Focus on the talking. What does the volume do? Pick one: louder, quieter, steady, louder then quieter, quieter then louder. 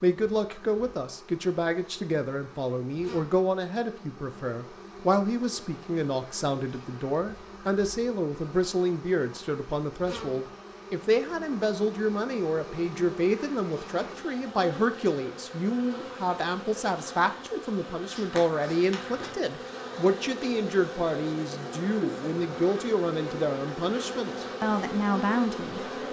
steady.